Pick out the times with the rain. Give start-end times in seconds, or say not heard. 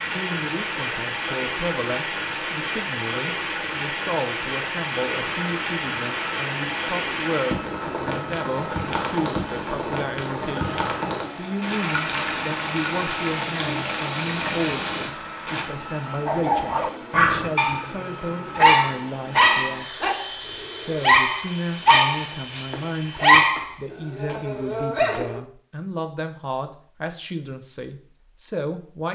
0.0-15.7.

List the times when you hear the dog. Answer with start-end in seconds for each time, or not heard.
16.2-25.4.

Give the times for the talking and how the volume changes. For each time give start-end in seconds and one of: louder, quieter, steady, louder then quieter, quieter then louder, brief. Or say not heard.
0.0-20.1 steady
20.7-29.1 steady.